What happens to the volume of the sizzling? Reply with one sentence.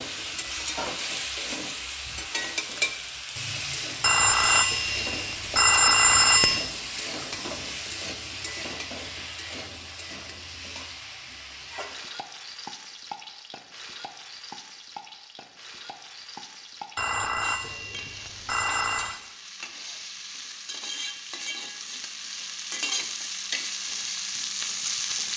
The volume of the sizzling goes down, then up.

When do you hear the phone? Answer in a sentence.
The phone can be heard from 4.0 to 6.7 s and from 16.9 to 19.2 s.